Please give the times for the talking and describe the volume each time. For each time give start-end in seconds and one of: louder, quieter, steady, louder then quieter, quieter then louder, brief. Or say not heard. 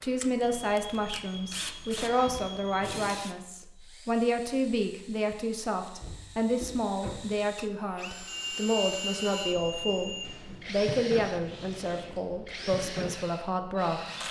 0.0-14.2 steady.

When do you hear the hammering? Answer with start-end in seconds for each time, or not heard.
not heard.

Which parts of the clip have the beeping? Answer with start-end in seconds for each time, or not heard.
0.4-3.0, 8.2-10.3.